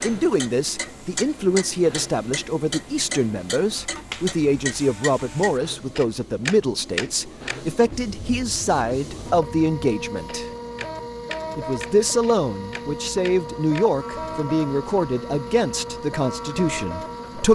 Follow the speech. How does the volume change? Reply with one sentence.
The loudness of the speech stays about the same.